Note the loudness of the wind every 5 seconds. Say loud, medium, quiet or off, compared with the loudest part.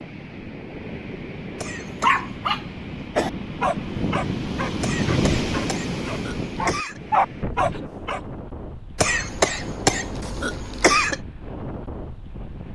loud, loud, medium.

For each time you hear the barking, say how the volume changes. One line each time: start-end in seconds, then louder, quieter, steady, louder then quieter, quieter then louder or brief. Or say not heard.
2.0-8.2 quieter then louder.